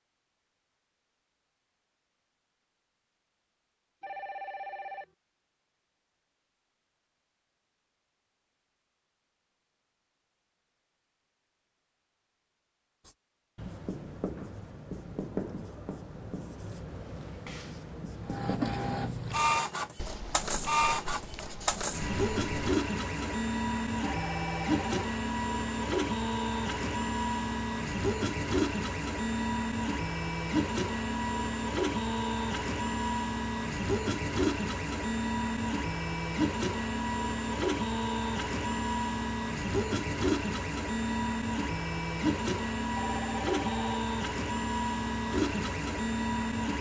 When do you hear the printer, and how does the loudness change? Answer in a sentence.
You can hear the printer from 18.2 to 46.7 s, at a steady volume.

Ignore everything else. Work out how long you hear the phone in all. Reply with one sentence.
The phone can be heard for 3 seconds in total.